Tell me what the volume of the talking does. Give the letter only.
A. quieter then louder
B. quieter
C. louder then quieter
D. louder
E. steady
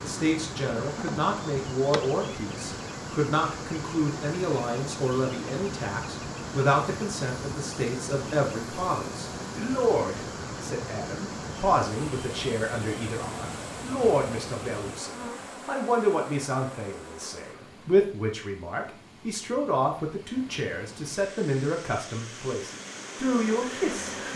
E.